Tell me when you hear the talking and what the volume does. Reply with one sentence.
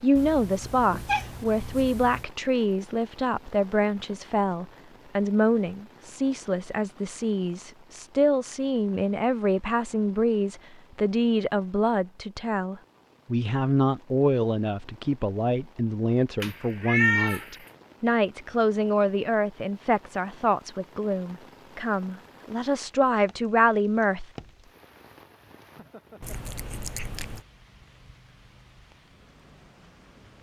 The talking can be heard from 0.0 to 24.2 s, at a steady volume.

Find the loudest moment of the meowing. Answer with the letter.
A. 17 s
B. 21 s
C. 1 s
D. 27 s
A.